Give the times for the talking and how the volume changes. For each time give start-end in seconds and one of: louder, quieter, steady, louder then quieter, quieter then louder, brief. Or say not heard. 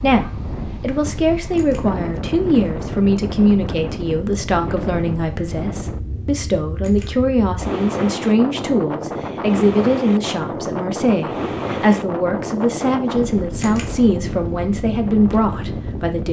0.0-16.2 steady.